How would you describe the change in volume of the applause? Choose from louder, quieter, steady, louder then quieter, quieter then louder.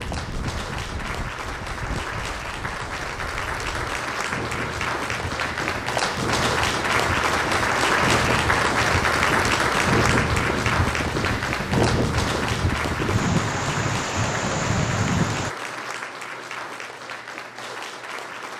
louder then quieter.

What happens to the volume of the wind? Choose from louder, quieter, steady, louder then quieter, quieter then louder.
louder.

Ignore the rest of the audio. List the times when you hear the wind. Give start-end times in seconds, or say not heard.
0.0-15.6.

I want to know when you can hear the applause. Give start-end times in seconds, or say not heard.
0.0-18.5.